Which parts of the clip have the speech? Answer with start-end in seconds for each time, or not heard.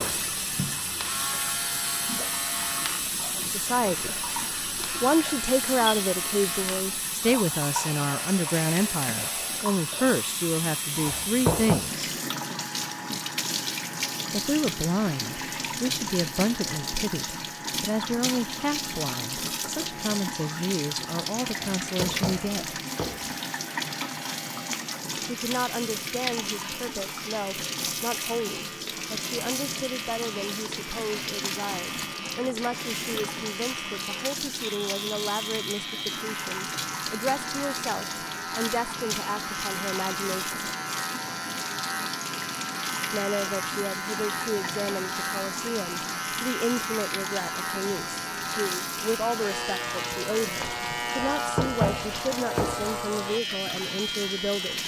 3.4-4.2, 5.0-12.1, 14.3-22.8, 25.2-40.5, 43.1-54.8.